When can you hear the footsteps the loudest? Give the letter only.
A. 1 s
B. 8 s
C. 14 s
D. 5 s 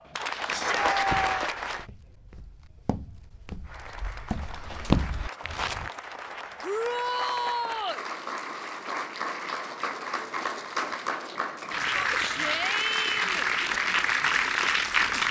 D.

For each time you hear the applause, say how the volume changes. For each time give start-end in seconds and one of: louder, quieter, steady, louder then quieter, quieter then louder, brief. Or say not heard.
0.0-1.9 brief
3.6-15.2 louder.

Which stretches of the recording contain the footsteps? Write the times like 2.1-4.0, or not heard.
0.9-5.9.